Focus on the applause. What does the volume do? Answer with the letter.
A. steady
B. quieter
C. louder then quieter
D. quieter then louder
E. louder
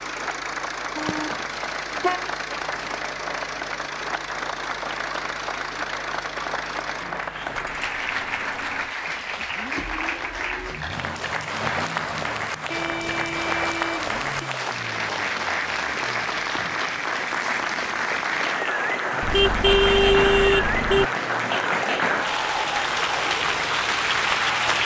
E.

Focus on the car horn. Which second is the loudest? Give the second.
20 s.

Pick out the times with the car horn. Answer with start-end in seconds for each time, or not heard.
0.9-2.9, 12.7-14.2, 19.2-21.1.